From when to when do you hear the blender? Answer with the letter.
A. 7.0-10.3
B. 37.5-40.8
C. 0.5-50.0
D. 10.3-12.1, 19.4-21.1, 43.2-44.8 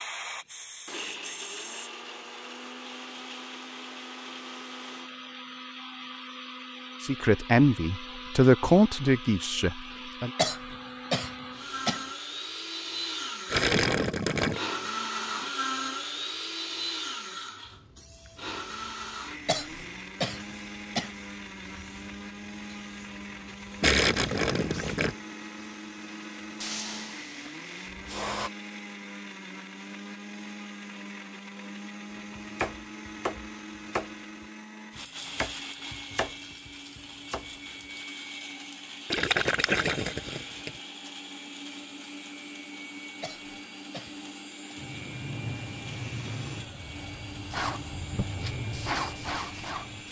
C.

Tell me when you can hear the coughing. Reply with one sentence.
The coughing can be heard from 10.3 to 12.1 s, from 19.4 to 21.1 s and from 43.2 to 44.8 s.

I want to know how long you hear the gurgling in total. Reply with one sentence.
You can hear the gurgling for 4 seconds altogether.